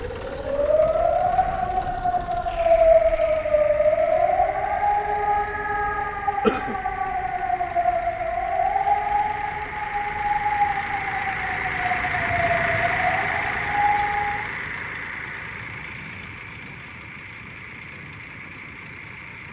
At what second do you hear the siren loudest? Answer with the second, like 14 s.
3 s.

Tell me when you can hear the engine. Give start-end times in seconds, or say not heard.
0.0-19.4.